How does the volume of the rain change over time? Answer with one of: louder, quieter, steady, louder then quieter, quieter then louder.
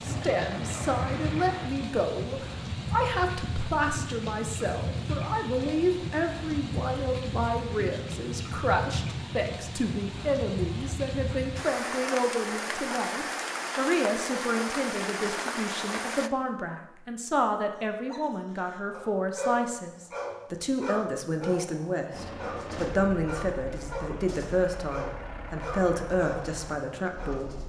steady.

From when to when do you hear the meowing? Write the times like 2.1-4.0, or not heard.
not heard.